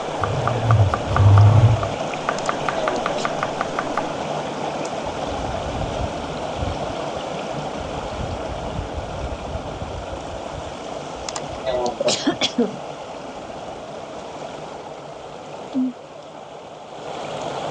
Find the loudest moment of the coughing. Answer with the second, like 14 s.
12 s.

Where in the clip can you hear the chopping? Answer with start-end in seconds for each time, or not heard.
0.0-4.2.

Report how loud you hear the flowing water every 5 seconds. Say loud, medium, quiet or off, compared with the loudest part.
loud, loud, medium, loud.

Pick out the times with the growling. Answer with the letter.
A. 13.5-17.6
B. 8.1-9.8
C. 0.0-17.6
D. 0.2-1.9
D.